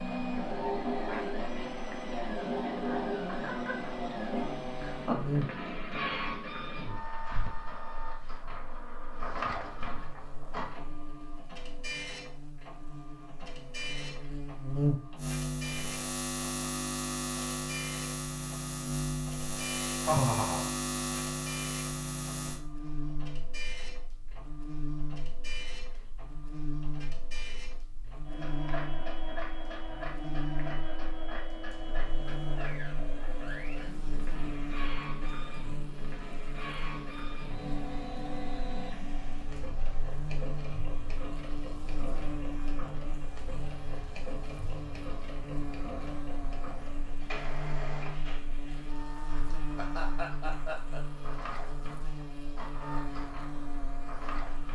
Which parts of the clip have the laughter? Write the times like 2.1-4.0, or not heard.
2.7-4.0, 20.1-20.7, 49.5-51.0.